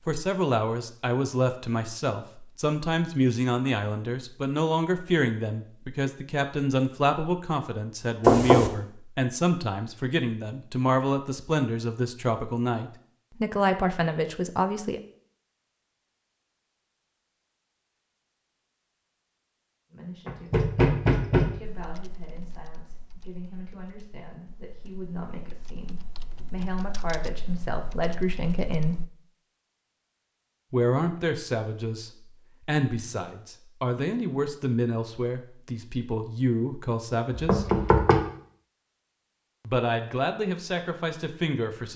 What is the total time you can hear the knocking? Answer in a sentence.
You can hear the knocking for 3 seconds altogether.